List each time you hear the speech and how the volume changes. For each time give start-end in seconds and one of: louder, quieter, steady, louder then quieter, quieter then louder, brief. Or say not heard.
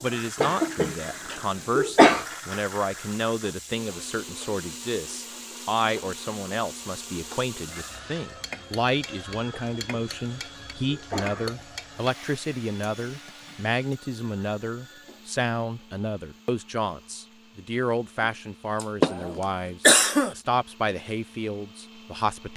0.0-22.5 steady.